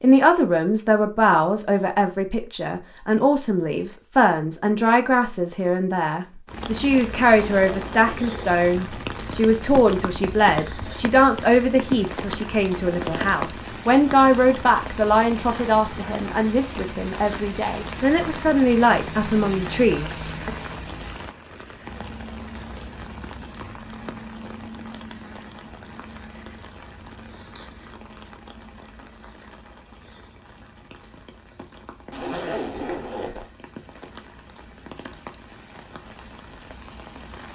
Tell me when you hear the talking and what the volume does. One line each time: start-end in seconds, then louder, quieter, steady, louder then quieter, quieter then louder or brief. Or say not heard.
0.0-20.5 steady.